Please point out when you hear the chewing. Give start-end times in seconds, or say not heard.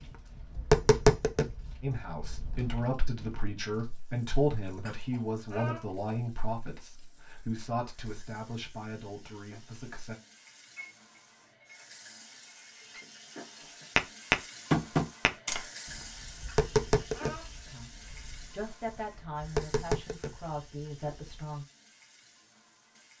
not heard.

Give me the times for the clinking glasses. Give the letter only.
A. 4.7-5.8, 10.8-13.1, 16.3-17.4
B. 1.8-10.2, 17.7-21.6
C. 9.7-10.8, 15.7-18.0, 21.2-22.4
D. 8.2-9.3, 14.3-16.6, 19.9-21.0
A.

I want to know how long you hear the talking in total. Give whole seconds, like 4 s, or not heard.
12 s.